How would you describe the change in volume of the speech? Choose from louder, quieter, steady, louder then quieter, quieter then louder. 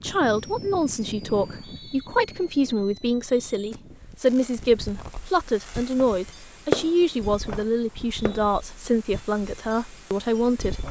steady.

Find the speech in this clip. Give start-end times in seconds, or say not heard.
0.0-10.8.